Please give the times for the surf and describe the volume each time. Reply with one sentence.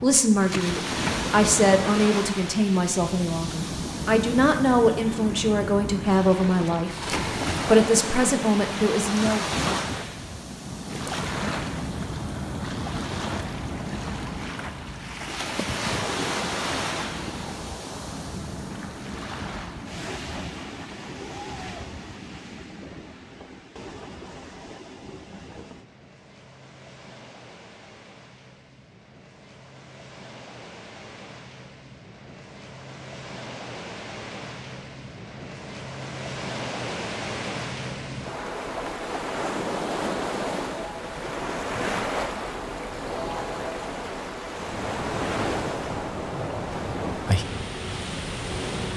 The surf can be heard from 0.0 to 48.9 s, getting quieter then louder.